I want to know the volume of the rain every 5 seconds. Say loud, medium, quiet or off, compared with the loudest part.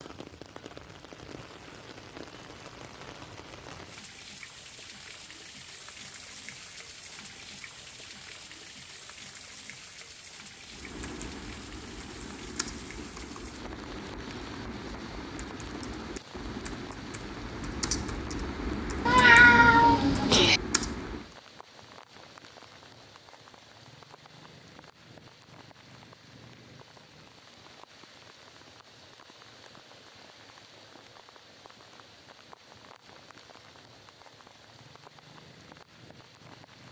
loud, loud, loud, loud, medium, medium, medium, medium.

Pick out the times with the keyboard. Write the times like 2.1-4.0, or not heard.
10.7-21.4.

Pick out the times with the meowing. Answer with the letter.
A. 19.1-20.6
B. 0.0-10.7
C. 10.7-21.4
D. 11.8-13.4
A.